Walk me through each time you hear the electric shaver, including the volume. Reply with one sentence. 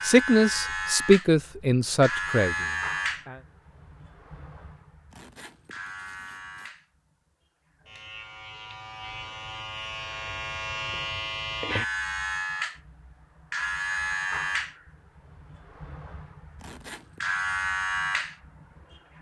The electric shaver can be heard from 0.0 to 19.1 s, getting quieter then louder.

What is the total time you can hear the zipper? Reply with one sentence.
You can hear the zipper for 2 seconds altogether.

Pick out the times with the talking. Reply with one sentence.
The talking can be heard from 0.0 to 3.4 s.